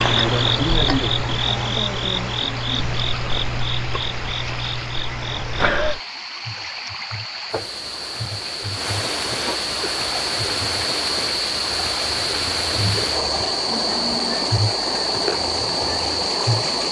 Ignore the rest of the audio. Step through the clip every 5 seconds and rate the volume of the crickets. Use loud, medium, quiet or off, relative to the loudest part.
loud, medium, loud, loud.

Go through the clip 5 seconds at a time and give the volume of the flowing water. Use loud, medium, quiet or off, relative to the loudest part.
medium, medium, loud, loud.